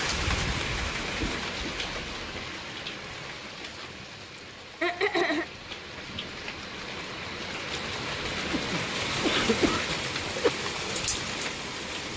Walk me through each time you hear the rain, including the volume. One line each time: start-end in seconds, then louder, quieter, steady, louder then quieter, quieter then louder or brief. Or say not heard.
0.0-12.1 quieter then louder.